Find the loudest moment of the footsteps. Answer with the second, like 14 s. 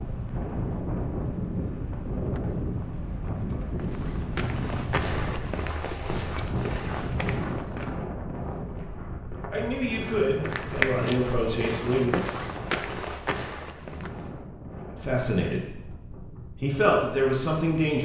11 s.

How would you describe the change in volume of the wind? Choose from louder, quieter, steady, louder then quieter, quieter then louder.
quieter.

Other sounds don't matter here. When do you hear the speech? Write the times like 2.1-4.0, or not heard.
9.5-12.3, 15.0-18.0.